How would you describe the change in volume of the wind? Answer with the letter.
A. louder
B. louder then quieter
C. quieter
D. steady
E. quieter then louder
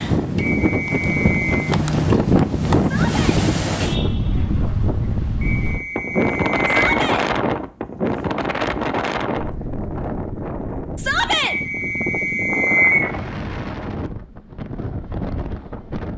C.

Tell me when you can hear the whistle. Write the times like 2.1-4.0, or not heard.
0.3-1.7, 5.4-6.8, 11.4-13.1.